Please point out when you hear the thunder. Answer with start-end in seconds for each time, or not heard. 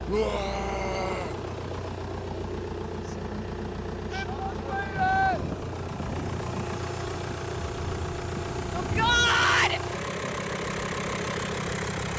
4.9-9.5.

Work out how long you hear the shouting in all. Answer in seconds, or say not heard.
4 s.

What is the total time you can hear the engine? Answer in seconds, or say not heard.
12 s.